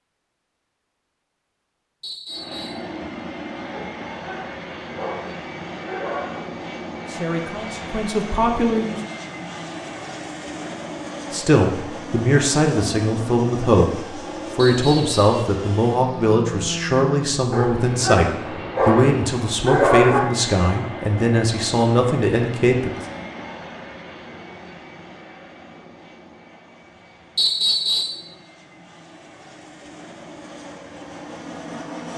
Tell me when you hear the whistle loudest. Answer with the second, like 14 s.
28 s.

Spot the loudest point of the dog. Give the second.
20 s.